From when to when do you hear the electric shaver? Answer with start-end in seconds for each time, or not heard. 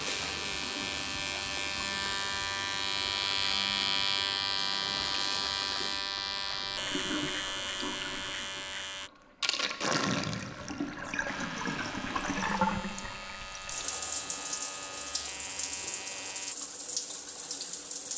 0.0-9.1, 11.2-16.6.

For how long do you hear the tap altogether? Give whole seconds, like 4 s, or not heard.
18 s.